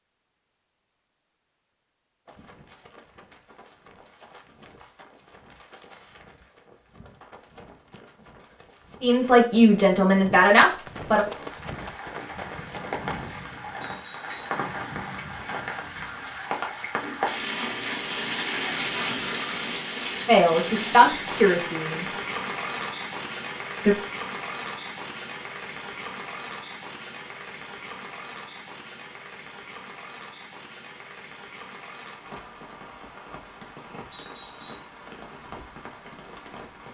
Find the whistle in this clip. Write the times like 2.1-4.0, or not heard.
13.8-14.5, 34.1-34.9.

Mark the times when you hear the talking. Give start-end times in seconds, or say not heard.
9.0-11.2, 20.2-22.1.